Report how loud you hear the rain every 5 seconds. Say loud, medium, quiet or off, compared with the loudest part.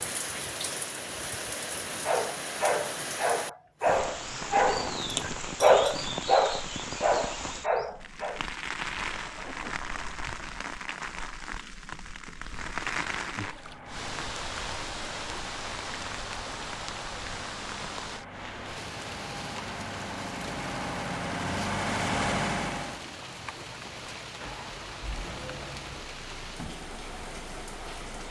loud, loud, loud, loud, medium, medium.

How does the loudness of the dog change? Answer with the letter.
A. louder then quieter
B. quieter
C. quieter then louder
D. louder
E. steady
A.